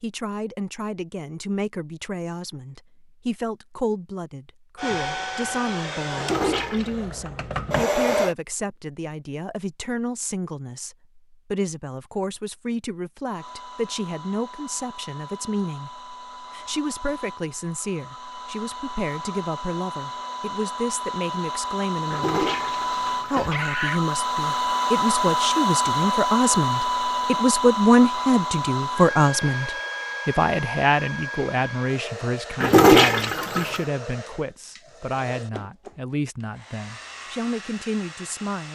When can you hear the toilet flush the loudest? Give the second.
33 s.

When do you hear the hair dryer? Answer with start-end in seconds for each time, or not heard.
4.8-8.3, 13.3-38.7.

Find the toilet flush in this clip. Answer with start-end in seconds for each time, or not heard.
6.2-7.0, 22.1-24.0, 32.6-33.8.